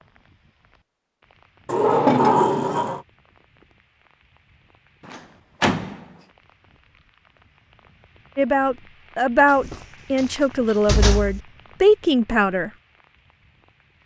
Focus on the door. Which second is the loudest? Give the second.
2 s.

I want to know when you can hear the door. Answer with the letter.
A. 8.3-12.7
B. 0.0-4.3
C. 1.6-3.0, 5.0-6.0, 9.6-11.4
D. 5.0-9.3
C.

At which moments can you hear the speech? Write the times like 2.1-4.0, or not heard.
8.3-12.7.